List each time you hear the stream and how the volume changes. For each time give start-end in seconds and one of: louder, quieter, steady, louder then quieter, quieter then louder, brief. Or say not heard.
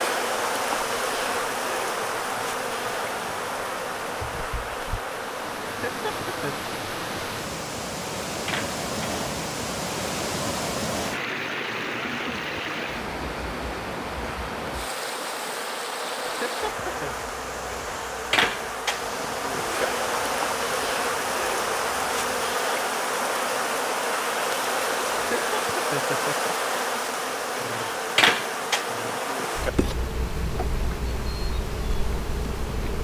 0.1-32.9 louder then quieter.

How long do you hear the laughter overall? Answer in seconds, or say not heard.
3 s.